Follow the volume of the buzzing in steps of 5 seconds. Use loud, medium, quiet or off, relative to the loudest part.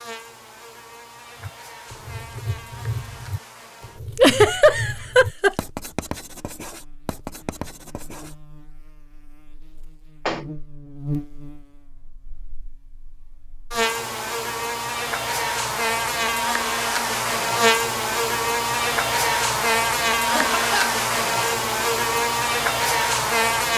quiet, quiet, medium, loud, loud.